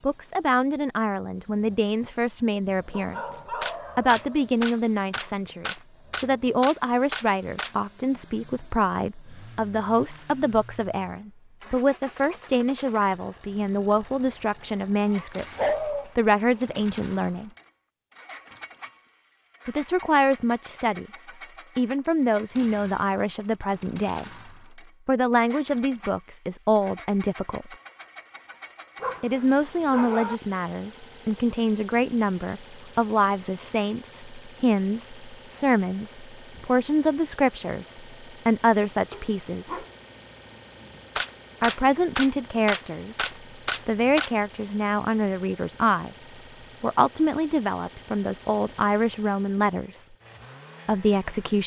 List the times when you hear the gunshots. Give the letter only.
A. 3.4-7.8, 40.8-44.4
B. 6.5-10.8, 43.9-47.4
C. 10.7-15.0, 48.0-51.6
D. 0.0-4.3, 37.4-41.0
A.